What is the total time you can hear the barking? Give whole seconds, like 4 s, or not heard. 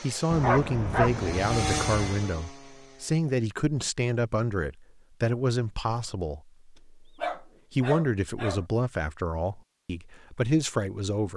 3 s.